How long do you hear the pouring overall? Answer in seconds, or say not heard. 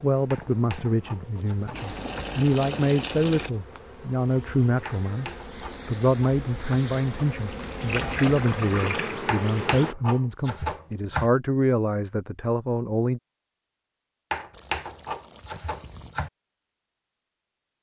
5 s.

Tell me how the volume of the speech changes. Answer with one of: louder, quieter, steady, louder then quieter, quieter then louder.
steady.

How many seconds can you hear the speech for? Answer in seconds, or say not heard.
13 s.